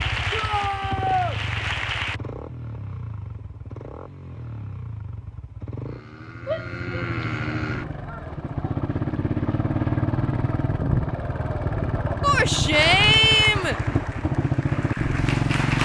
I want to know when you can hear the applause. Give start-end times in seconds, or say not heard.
0.0-2.2, 12.7-15.8.